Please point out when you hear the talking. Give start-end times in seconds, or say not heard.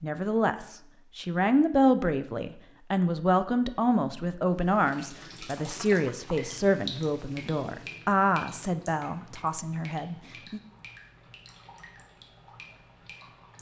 0.0-10.6.